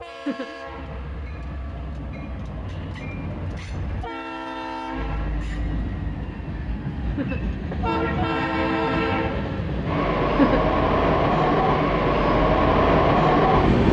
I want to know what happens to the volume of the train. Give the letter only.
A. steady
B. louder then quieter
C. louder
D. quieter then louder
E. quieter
C.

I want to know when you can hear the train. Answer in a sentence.
The train can be heard from 0.0 to 13.8 s.